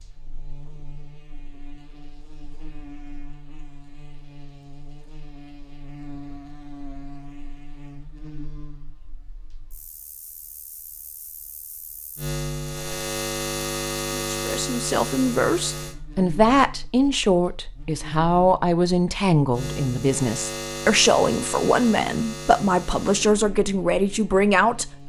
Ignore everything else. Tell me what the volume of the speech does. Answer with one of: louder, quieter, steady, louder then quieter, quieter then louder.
steady.